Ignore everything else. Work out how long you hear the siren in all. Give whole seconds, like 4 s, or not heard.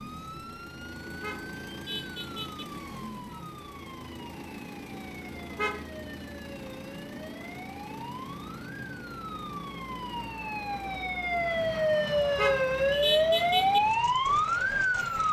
15 s.